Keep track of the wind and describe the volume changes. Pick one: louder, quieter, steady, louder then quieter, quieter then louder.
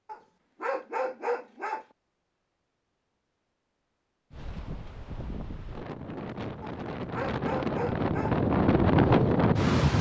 louder.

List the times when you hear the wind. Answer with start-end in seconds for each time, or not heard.
4.3-9.9.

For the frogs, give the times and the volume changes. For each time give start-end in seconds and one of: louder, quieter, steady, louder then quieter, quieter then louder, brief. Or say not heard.
not heard.